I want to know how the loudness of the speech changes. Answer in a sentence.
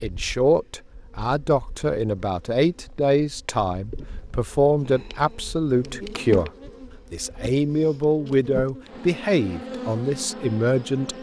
The loudness of the speech stays about the same.